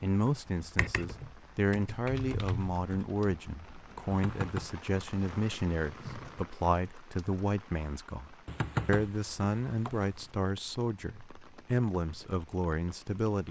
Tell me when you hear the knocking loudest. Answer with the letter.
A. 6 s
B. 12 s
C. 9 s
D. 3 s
C.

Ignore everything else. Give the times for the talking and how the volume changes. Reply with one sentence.
You can hear the talking from 0.0 to 13.4 s, at a steady volume.